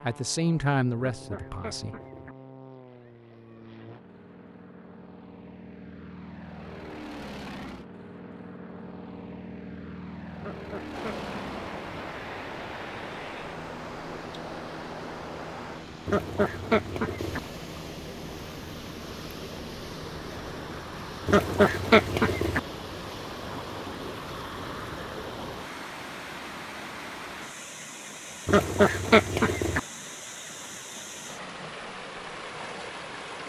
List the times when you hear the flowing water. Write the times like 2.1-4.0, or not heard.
10.9-33.4.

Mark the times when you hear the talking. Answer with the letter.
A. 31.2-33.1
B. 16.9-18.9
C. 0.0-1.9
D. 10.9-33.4
C.